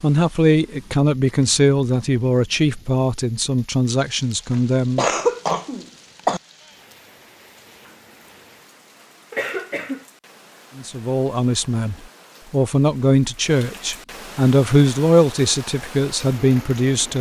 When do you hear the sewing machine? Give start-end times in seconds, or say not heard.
not heard.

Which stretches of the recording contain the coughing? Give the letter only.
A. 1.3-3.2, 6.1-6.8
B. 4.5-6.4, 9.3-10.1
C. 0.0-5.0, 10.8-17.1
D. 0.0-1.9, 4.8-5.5
B.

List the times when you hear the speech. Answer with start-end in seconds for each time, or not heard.
0.0-5.0, 10.8-17.1.